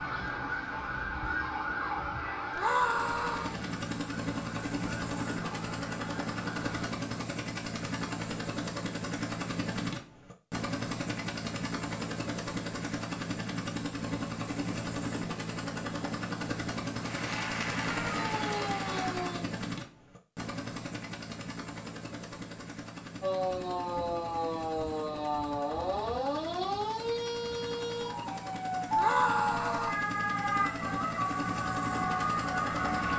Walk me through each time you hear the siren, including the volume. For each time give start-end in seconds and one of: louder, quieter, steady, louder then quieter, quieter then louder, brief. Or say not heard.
0.0-6.9 quieter
17.9-19.4 brief
23.2-33.1 steady.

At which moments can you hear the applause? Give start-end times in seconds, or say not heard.
16.9-19.4.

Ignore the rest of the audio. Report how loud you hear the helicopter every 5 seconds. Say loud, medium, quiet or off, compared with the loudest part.
loud, loud, loud, loud, medium, medium, loud.